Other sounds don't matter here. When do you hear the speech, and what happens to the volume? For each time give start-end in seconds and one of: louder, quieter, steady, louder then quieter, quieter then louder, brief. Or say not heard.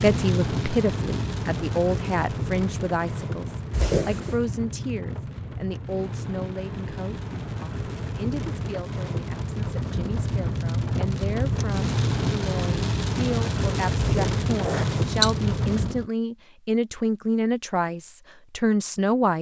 0.0-19.3 quieter then louder.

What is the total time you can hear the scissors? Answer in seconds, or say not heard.
2 s.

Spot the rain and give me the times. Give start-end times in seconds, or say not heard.
0.0-16.1.